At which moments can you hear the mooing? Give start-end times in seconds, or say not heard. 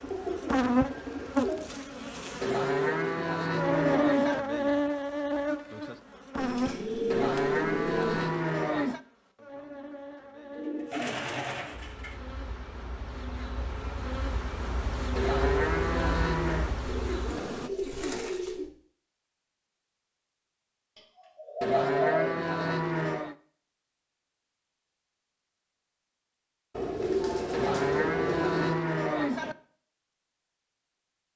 2.4-4.4, 7.1-9.0, 15.2-16.8, 21.6-23.4, 27.5-29.6.